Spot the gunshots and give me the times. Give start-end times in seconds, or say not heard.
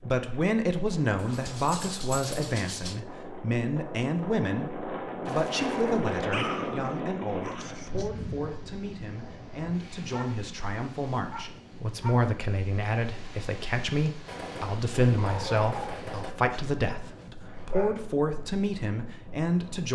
14.2-16.3.